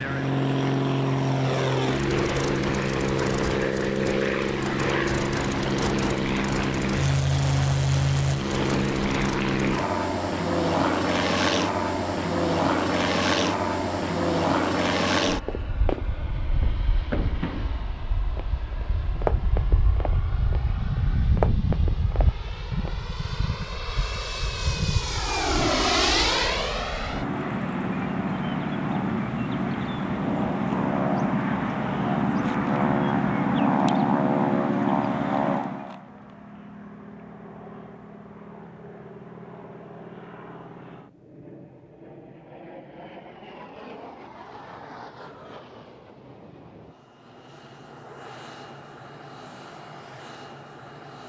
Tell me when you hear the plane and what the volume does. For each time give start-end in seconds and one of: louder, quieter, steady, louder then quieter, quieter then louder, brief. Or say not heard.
0.0-51.2 quieter.